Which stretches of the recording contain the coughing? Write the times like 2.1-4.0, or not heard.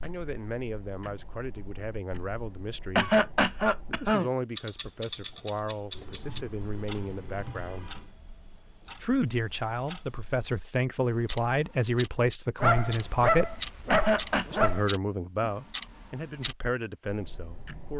3.0-4.3, 13.9-14.7.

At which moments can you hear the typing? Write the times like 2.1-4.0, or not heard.
5.2-8.2.